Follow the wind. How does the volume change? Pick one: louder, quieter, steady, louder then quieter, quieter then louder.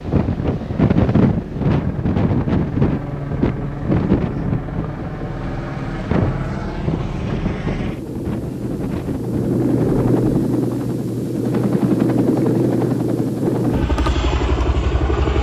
quieter.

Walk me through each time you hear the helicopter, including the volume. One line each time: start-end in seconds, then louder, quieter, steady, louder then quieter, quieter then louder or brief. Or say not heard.
0.0-15.3 louder.